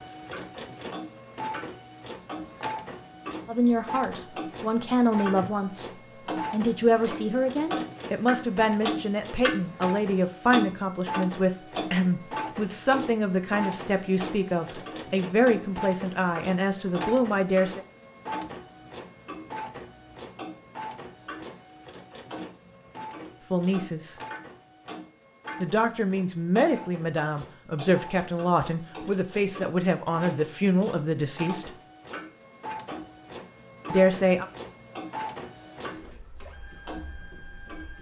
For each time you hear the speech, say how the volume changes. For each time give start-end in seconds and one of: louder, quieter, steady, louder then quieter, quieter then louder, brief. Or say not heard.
3.5-5.9 brief
6.5-17.8 steady
23.5-24.1 brief
25.6-31.7 steady
33.9-34.5 brief.